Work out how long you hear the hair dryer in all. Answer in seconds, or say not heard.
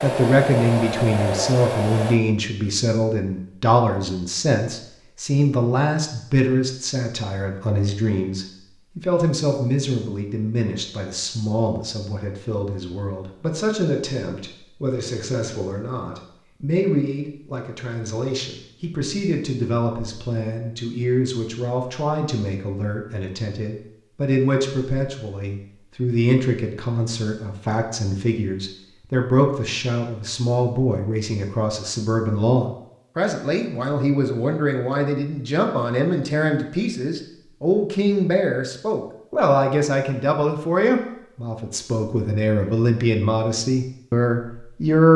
2 s.